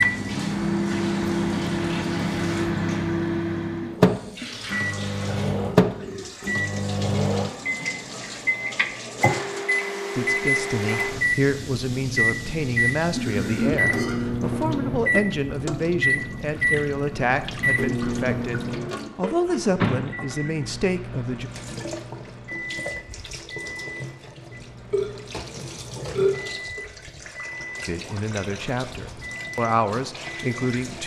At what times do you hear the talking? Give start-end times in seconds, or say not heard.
10.2-21.5, 27.9-31.0.